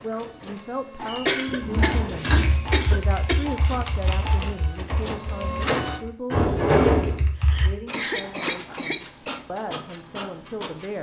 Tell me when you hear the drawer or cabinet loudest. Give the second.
7 s.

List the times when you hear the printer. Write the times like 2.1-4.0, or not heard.
0.0-6.0, 7.8-10.9.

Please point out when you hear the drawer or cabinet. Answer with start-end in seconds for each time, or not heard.
1.4-2.5, 6.3-7.2.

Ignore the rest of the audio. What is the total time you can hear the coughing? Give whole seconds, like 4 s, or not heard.
5 s.